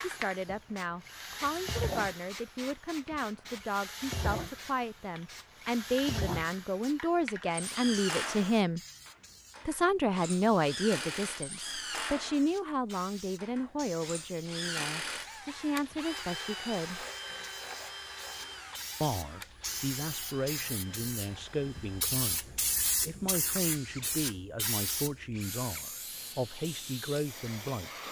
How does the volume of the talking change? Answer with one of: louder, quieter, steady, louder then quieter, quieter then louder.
louder then quieter.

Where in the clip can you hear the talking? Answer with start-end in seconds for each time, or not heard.
0.0-8.8, 9.7-17.1, 19.0-28.0.